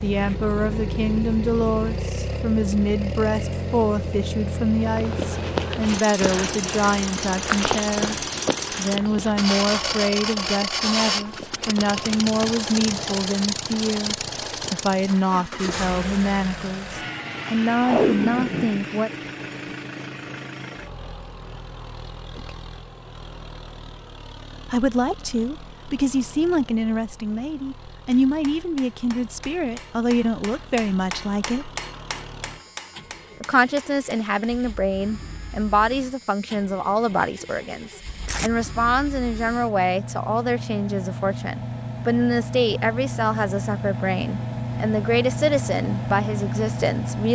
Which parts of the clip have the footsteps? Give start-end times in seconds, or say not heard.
4.8-12.5.